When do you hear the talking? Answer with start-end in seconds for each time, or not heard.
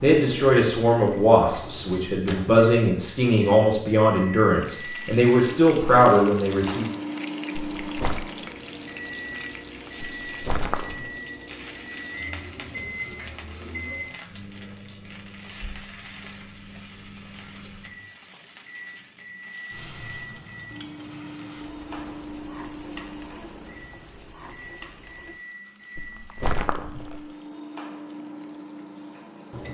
0.0-6.8.